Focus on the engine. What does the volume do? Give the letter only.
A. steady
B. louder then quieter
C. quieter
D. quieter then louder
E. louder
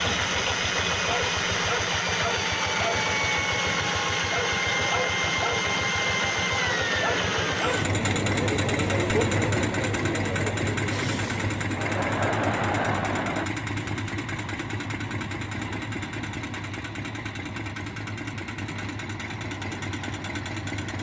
C.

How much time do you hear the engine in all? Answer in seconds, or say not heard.
21 s.